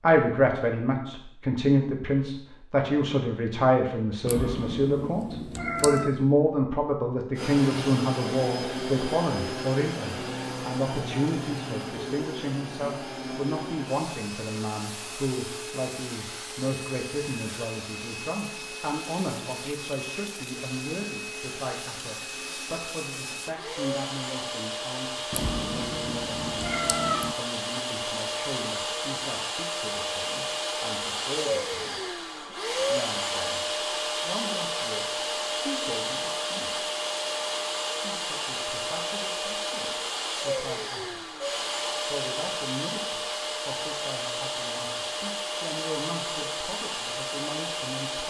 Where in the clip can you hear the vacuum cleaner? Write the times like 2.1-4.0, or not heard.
7.3-48.2.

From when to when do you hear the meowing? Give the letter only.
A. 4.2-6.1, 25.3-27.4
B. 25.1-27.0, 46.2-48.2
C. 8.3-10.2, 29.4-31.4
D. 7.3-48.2
A.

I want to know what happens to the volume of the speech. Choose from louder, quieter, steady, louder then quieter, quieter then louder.
quieter.